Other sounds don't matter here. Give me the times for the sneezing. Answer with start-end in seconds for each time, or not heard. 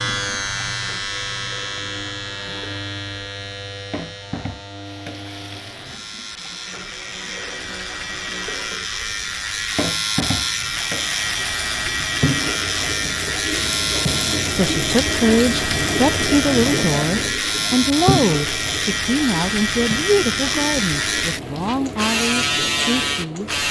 not heard.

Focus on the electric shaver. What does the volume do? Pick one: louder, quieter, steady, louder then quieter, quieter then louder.
louder.